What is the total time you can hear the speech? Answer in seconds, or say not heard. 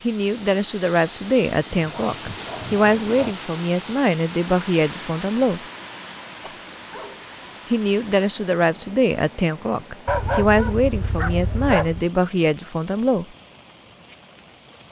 11 s.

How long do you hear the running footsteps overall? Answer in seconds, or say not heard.
not heard.